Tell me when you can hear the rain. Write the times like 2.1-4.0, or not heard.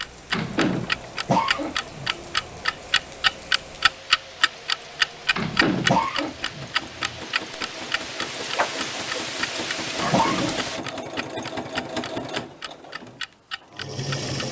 0.0-10.8.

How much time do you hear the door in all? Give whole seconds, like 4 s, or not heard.
2 s.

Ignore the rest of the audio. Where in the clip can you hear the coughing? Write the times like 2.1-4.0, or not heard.
1.2-2.6, 5.8-7.2, 10.1-10.6.